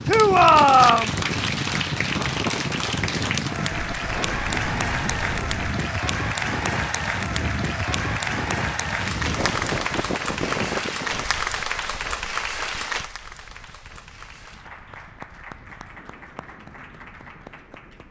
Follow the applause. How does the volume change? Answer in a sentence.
The loudness of the applause goes down.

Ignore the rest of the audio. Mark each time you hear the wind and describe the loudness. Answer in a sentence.
You can hear the wind from 0.0 to 18.0 s, getting quieter.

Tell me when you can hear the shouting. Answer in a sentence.
The shouting can be heard from 0.1 to 1.1 s.